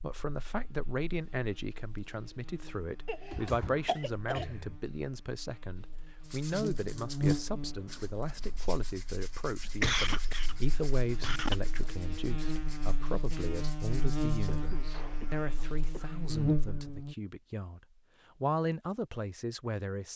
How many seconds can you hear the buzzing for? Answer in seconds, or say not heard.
17 s.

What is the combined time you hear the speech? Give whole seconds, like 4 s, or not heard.
20 s.